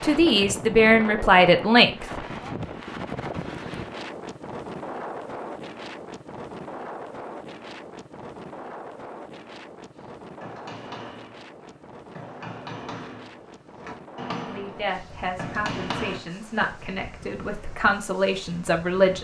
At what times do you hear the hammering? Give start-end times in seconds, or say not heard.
9.9-16.2.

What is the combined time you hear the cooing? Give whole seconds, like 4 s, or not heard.
not heard.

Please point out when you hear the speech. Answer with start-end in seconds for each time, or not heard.
0.0-2.0, 14.4-19.1.